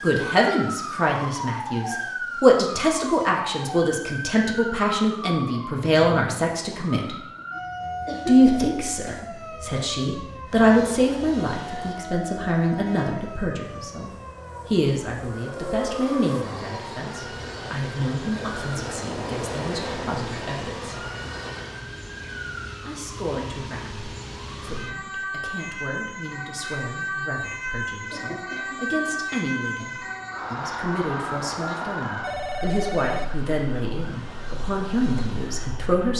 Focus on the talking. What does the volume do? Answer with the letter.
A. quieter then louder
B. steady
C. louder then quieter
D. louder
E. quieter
A.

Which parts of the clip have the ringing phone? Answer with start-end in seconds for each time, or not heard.
32.2-33.2.